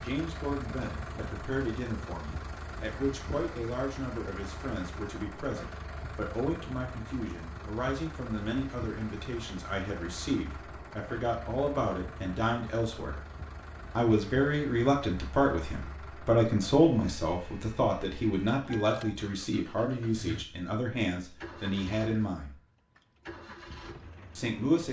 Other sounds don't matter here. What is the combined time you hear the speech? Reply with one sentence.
The speech can be heard for 22 seconds in total.